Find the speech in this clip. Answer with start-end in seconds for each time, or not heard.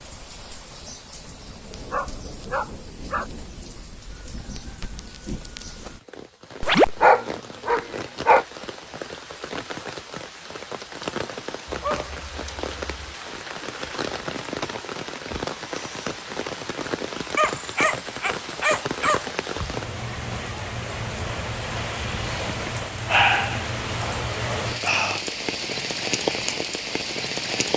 not heard.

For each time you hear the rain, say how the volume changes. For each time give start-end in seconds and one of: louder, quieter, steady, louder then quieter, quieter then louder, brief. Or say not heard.
0.0-27.7 louder.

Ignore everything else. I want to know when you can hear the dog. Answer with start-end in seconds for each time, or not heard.
1.9-3.3, 6.6-8.4, 11.7-13.2, 17.4-19.2, 22.4-25.2.